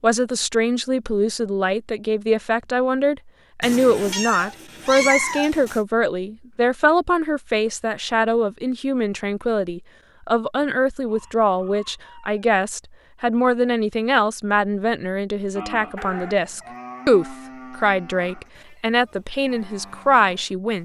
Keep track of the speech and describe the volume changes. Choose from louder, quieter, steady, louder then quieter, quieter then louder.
steady.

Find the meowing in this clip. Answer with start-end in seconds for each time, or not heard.
3.6-5.8, 15.9-16.7.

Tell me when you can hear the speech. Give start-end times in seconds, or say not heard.
0.0-20.8.